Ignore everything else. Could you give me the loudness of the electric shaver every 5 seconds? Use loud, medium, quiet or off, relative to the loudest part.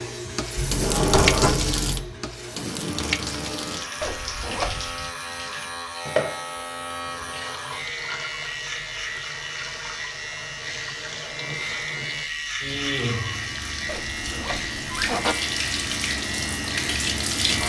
medium, loud, loud, loud.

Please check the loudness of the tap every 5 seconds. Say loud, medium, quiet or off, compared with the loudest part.
loud, medium, medium, loud.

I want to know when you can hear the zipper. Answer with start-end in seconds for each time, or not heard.
4.0-5.1, 13.8-15.3.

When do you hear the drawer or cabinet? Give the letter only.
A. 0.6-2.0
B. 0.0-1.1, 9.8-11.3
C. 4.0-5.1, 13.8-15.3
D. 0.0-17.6
A.